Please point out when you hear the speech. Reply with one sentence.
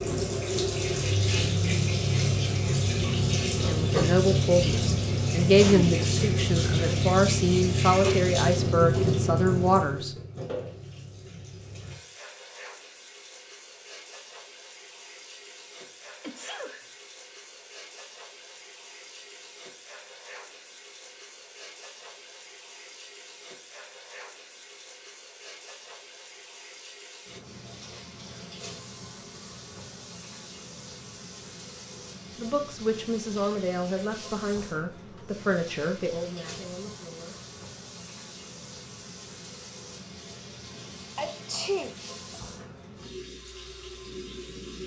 The speech can be heard from 3.5 to 10.2 s and from 32.4 to 37.4 s.